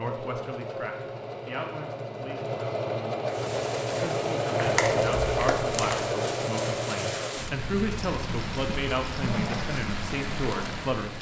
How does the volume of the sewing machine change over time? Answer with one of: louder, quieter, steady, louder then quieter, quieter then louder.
louder then quieter.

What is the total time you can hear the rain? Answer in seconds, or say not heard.
8 s.